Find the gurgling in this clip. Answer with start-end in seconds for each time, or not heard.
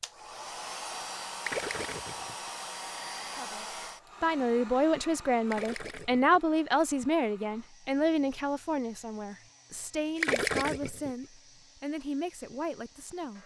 1.4-2.5, 5.5-6.5, 10.2-11.2.